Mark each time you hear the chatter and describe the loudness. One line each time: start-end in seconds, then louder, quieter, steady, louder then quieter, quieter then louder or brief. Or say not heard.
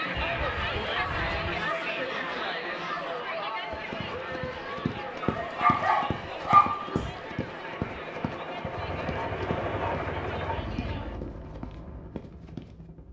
0.0-11.2 quieter.